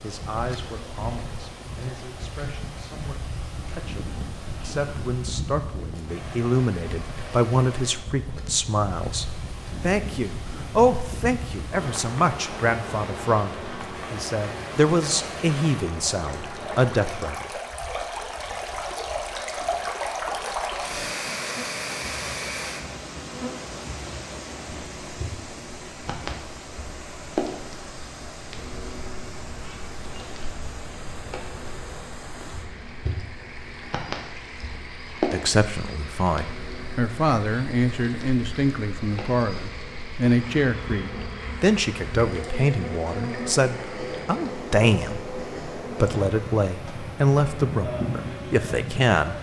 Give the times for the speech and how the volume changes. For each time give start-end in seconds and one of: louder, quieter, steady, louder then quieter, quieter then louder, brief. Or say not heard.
0.0-17.5 louder
35.3-49.3 steady.